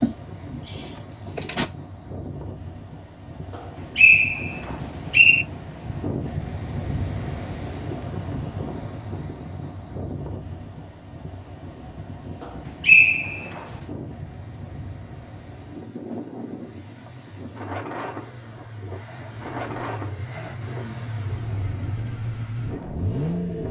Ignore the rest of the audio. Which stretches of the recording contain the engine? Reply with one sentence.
The engine can be heard from 0.0 to 1.7 s and from 12.8 to 23.6 s.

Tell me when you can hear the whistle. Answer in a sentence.
The whistle can be heard from 3.5 to 5.5 s and from 12.4 to 13.6 s.